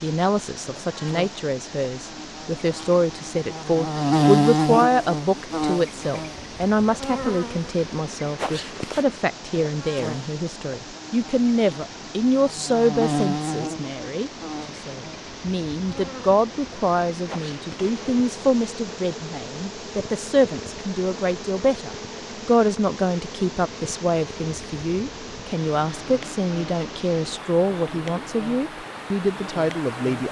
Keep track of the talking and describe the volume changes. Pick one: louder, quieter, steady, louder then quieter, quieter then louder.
steady.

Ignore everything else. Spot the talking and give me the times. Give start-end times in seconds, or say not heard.
0.0-30.2.